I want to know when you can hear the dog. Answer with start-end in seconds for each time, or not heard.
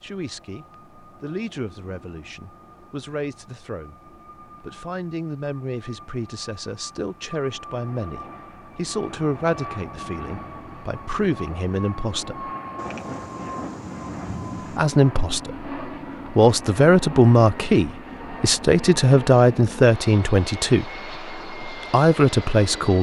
not heard.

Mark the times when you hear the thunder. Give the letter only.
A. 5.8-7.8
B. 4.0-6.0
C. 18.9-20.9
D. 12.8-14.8
D.